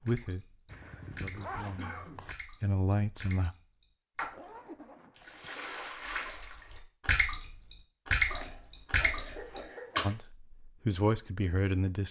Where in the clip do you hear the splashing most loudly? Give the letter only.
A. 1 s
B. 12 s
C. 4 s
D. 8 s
D.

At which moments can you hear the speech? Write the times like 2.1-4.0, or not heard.
0.0-3.5, 10.0-12.0.